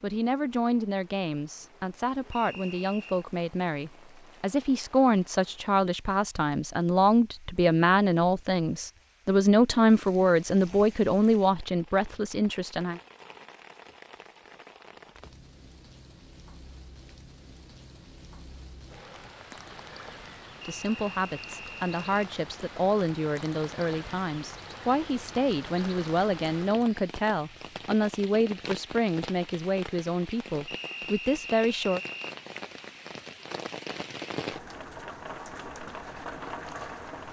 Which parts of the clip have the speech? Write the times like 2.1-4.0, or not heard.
0.0-13.0, 20.6-32.0.